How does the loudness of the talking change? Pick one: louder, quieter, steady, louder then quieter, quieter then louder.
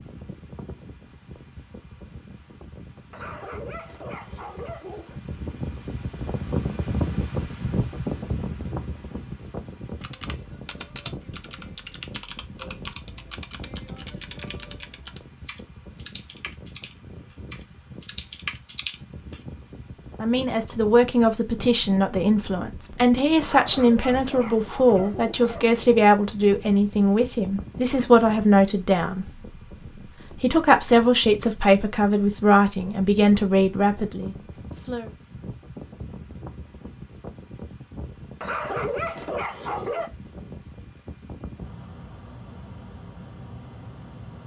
steady.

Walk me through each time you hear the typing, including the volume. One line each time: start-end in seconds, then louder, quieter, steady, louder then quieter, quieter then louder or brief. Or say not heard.
10.0-19.4 quieter then louder.